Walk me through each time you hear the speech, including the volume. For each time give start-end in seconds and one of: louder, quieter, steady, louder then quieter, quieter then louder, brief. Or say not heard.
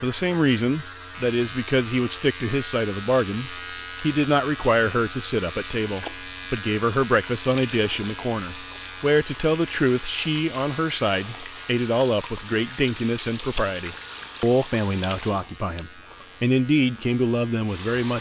0.0-18.1 steady.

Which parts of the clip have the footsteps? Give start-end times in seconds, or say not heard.
not heard.